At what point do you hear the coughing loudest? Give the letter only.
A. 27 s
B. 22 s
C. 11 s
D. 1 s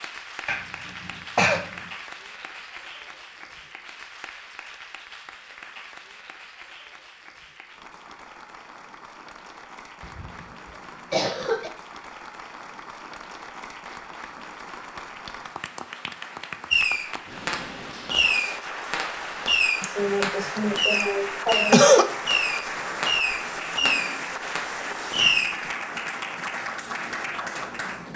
B.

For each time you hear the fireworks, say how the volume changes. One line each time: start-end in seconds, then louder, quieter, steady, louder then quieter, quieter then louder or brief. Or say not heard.
16.7-25.6 steady.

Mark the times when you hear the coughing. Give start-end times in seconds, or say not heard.
0.5-1.6, 10.0-10.4, 11.1-11.7, 19.8-22.1.